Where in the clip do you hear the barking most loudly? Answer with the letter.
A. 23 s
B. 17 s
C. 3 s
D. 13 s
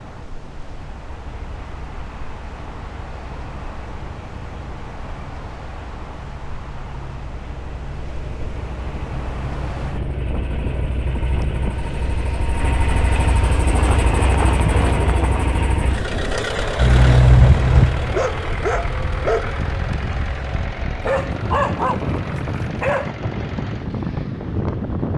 B.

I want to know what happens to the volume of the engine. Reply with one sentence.
The loudness of the engine goes up, then down.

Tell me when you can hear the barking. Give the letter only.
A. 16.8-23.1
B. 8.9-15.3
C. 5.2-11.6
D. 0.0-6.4
A.